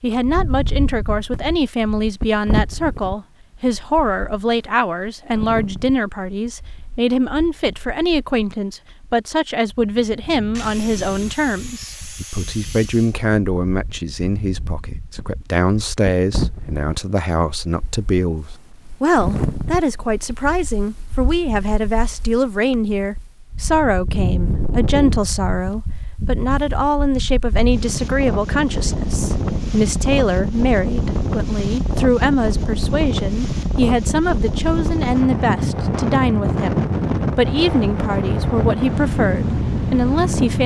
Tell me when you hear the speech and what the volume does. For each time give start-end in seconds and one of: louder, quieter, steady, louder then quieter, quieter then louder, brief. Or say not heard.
0.0-40.6 steady.